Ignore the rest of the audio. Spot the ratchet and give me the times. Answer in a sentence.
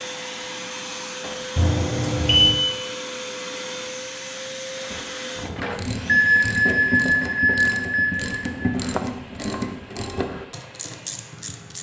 The ratchet can be heard from 4.9 to 11.7 s.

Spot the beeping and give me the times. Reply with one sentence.
The beeping can be heard from 1.6 to 2.5 s and from 6.0 to 8.6 s.